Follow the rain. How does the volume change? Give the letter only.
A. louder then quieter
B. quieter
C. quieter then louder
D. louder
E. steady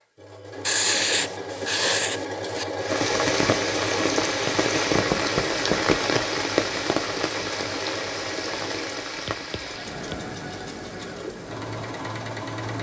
B.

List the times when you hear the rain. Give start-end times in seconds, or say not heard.
2.8-12.7.